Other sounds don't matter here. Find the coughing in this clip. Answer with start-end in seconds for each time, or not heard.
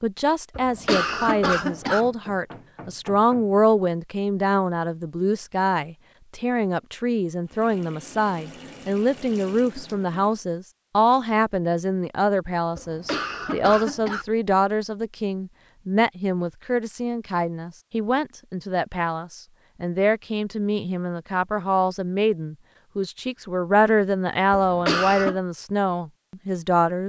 0.6-2.0, 12.8-14.2, 24.5-25.4.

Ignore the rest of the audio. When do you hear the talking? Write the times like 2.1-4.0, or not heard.
0.0-27.0.